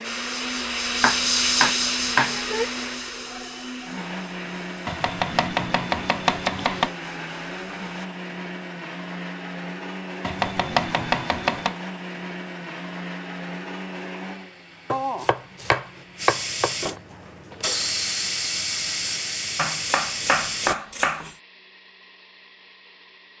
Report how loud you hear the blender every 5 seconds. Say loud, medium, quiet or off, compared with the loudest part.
loud, loud, loud, quiet, quiet.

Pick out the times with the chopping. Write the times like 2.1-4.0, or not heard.
1.0-2.6, 4.8-6.9, 10.2-11.8, 14.9-16.8, 19.6-21.4.